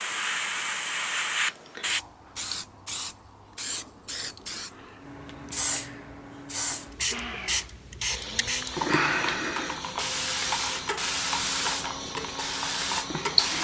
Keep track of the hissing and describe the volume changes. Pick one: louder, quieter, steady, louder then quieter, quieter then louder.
quieter then louder.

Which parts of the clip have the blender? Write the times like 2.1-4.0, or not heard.
7.1-13.5.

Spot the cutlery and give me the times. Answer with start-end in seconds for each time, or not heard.
not heard.